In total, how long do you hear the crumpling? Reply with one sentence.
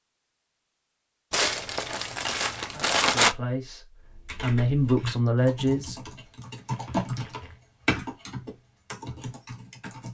You can hear the crumpling for 3 seconds altogether.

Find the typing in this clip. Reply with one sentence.
The typing can be heard from 4.0 to 10.0 s.